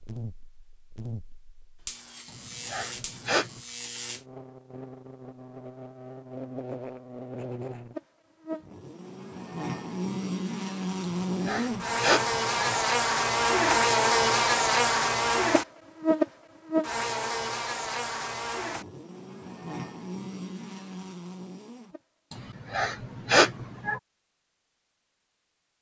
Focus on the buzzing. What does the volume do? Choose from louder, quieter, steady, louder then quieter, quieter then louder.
louder then quieter.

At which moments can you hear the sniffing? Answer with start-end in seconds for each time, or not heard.
2.2-3.6, 11.0-12.8, 22.3-24.0.